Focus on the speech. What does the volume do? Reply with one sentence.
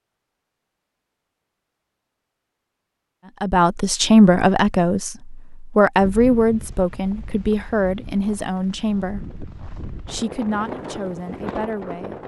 The loudness of the speech goes down.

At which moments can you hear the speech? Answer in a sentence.
The speech can be heard from 3.4 to 12.2 s.